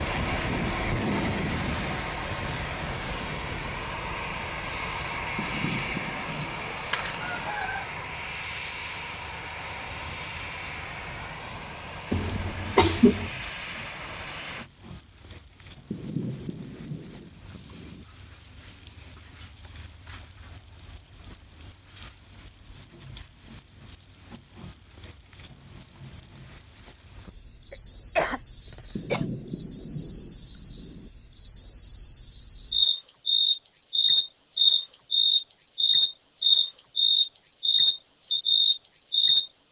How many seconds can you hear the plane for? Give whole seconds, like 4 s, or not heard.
15 s.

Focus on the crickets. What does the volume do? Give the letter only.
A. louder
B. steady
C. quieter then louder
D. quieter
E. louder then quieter
A.